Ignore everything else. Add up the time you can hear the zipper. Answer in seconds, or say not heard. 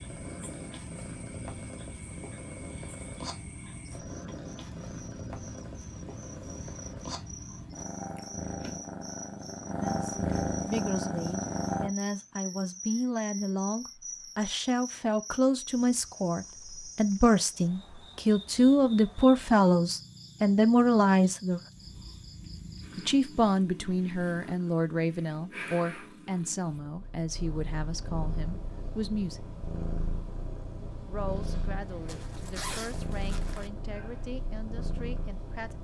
2 s.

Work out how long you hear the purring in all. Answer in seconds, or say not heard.
26 s.